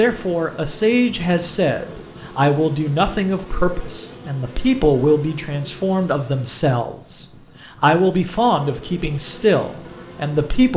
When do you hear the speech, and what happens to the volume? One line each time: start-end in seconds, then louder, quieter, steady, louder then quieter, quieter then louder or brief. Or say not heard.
0.0-10.7 steady.